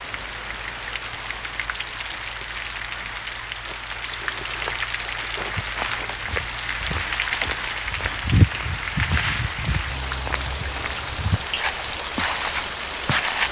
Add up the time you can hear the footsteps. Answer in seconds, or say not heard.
8 s.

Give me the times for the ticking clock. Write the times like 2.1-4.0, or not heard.
not heard.